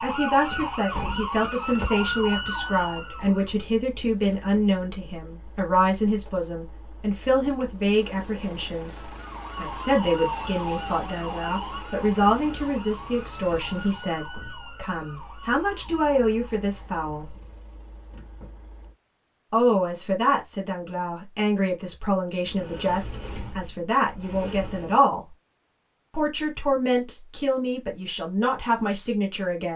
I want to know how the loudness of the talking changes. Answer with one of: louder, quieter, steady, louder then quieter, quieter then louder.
steady.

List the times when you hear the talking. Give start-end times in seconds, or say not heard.
0.0-17.4, 19.5-25.2, 26.1-29.7.